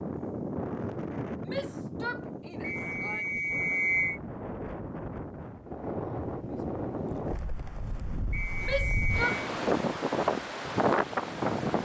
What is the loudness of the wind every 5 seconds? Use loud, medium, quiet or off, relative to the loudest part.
medium, medium, loud.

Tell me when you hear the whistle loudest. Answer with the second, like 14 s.
4 s.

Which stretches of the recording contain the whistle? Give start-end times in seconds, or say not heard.
2.6-4.2, 8.3-9.3.